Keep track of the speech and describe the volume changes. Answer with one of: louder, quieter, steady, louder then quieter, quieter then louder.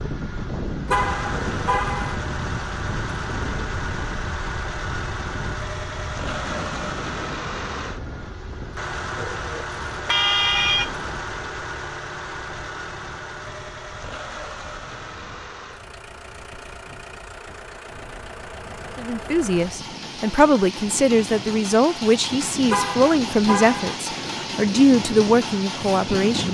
steady.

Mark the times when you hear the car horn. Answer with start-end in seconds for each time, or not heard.
0.9-2.1, 10.1-11.1, 22.7-23.9.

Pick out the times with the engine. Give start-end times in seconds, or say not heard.
0.0-26.4.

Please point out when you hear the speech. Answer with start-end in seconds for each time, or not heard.
18.9-26.4.